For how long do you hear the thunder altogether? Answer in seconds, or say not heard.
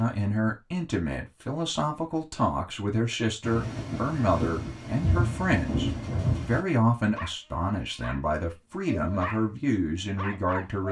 3 s.